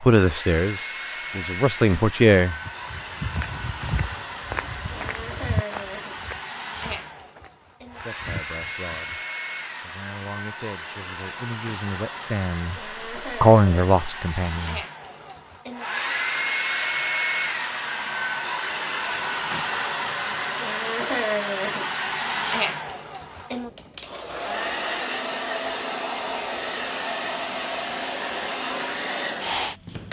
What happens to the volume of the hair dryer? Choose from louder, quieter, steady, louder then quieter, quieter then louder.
louder.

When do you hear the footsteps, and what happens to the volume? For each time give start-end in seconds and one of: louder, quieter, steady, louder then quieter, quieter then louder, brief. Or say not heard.
2.6-9.2 quieter then louder.